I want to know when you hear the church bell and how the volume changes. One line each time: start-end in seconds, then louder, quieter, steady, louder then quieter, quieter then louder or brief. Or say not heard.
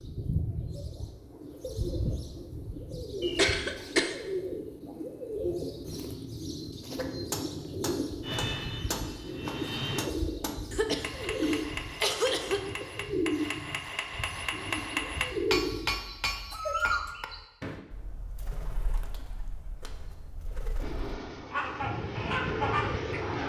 not heard.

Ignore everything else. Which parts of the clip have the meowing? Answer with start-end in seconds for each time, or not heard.
not heard.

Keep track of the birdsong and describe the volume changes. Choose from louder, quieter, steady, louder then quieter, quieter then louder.
steady.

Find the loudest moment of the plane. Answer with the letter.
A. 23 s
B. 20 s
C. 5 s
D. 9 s
A.